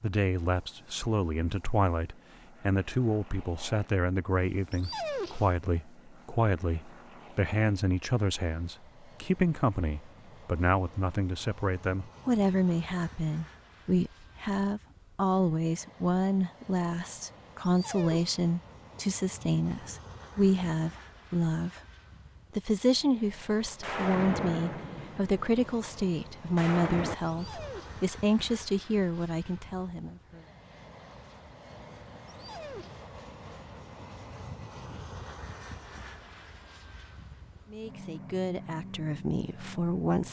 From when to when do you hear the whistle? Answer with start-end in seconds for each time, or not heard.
not heard.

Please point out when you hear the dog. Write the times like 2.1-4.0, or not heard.
4.7-5.5, 17.6-18.4, 27.2-28.1, 32.2-33.1.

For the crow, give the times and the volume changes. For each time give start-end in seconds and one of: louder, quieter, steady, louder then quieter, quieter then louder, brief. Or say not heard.
not heard.